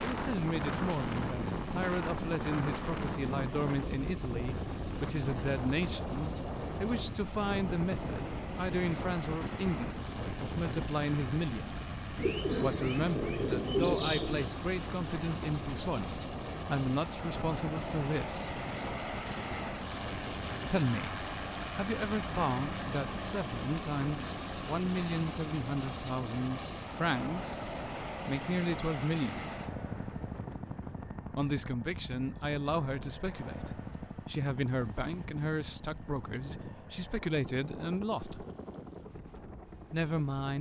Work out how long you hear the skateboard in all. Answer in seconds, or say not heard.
not heard.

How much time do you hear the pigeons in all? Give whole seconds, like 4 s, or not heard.
2 s.